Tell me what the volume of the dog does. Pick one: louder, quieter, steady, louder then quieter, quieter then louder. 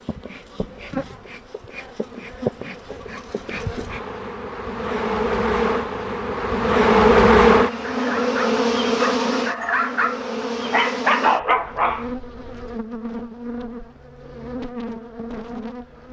louder.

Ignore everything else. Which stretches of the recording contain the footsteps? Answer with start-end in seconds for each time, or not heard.
not heard.